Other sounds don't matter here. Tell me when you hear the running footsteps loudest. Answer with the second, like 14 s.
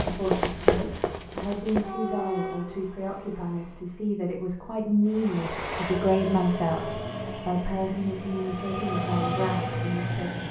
1 s.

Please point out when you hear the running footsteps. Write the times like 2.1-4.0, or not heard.
0.0-1.9.